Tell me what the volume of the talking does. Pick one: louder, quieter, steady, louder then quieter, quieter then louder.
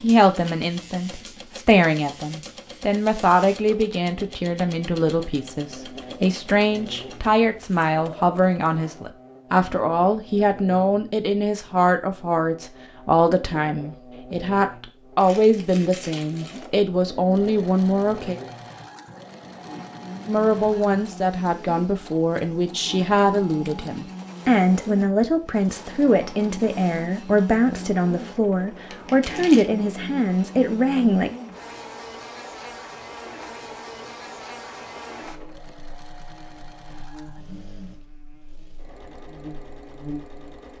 steady.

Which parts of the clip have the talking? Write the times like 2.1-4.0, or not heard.
0.0-18.4, 20.2-31.3.